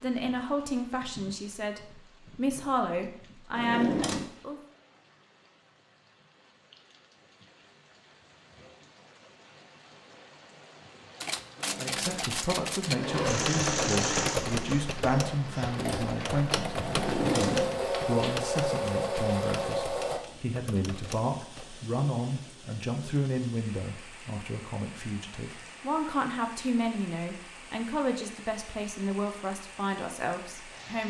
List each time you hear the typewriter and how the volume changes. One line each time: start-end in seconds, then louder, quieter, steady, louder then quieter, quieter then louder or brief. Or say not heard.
11.2-21.6 quieter.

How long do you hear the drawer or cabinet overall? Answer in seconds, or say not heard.
2 s.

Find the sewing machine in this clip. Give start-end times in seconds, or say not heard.
11.6-20.2.